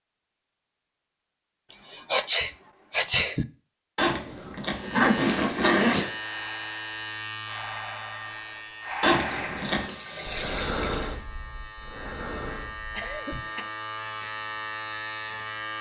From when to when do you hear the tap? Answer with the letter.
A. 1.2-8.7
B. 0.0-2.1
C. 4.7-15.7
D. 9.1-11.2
D.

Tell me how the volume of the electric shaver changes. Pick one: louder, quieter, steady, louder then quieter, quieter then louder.
quieter then louder.